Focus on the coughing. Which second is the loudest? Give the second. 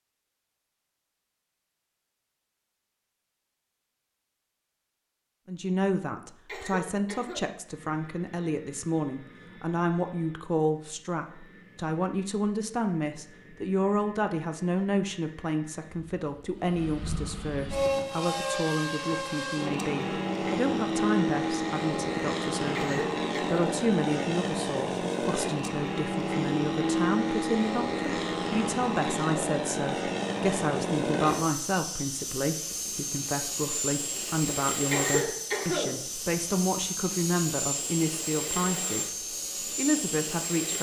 35 s.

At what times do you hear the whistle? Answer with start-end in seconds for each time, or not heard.
not heard.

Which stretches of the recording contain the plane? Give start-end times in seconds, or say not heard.
7.5-40.7.